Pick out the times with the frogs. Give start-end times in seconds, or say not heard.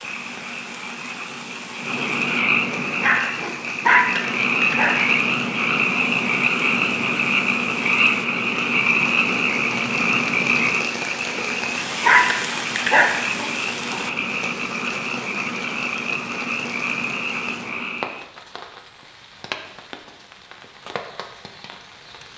0.0-18.2.